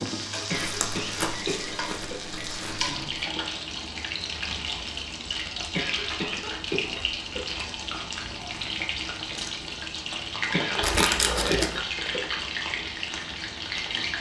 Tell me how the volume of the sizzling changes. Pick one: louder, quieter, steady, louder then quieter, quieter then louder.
steady.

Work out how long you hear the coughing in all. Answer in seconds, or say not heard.
5 s.